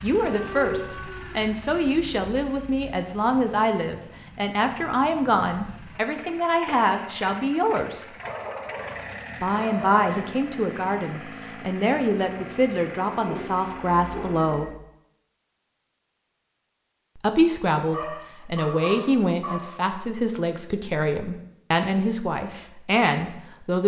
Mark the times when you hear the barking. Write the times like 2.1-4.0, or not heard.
0.2-1.5, 8.2-10.1, 13.2-14.8, 17.9-19.8.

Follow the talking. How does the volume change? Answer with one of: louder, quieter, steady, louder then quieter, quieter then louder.
steady.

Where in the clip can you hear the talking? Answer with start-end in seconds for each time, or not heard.
0.0-8.1, 9.4-14.7, 17.1-23.8.